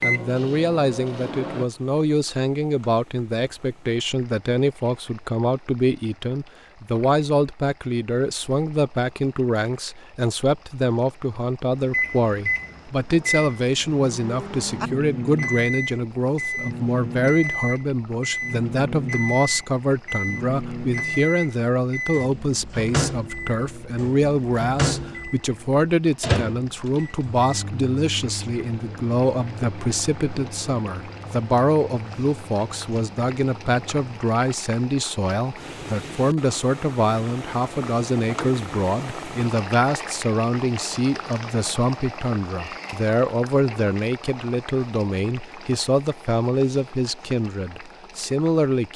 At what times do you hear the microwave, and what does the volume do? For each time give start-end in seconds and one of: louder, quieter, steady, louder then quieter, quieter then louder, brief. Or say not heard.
0.0-1.6 brief
11.8-34.2 quieter.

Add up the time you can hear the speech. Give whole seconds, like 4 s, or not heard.
49 s.